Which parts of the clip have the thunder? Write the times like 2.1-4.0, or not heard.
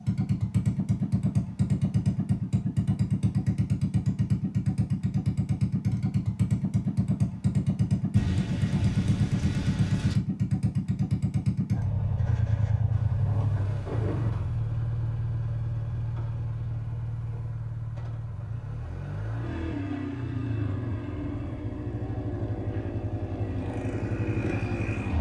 8.2-10.2, 12.9-14.3.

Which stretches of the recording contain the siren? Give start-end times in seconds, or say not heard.
not heard.